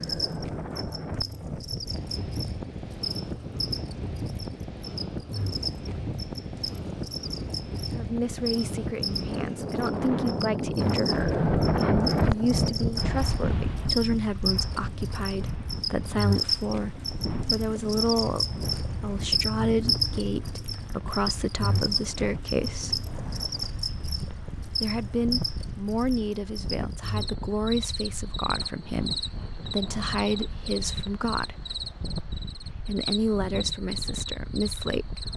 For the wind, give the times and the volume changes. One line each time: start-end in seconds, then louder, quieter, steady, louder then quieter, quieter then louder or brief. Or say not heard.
0.0-35.3 louder then quieter.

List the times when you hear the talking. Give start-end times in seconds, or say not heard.
7.9-23.1, 24.8-31.6, 32.8-35.3.